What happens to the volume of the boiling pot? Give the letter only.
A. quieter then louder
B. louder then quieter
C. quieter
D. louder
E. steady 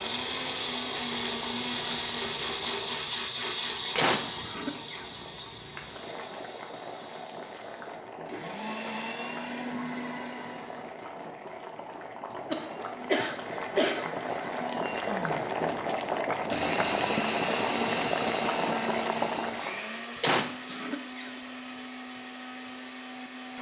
D.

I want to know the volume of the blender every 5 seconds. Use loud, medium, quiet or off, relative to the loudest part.
loud, medium, medium, loud, medium.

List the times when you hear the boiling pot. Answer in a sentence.
You can hear the boiling pot from 0.0 to 19.9 s.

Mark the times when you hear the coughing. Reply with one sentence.
You can hear the coughing from 4.0 to 5.2 s, from 12.5 to 14.1 s and from 20.2 to 21.4 s.